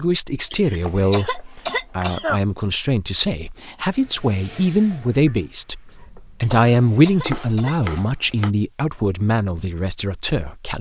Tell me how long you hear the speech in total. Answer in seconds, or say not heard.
11 s.